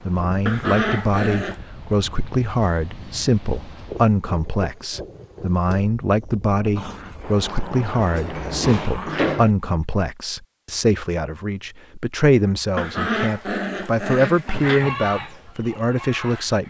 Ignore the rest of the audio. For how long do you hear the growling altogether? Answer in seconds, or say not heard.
6 s.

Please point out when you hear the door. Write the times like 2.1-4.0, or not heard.
8.1-9.5.